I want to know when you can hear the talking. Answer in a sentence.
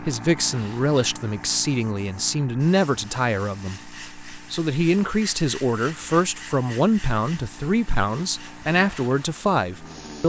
You can hear the talking from 0.0 to 10.2 s.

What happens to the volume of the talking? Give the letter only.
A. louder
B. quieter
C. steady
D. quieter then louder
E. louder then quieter
C.